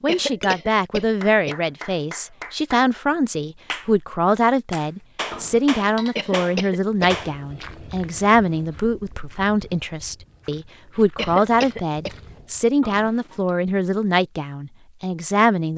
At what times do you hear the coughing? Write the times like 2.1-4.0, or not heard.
0.1-1.6, 6.2-7.2, 11.2-12.1.